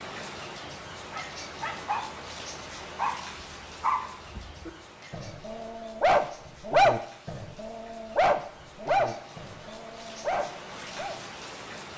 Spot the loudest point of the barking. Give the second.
7 s.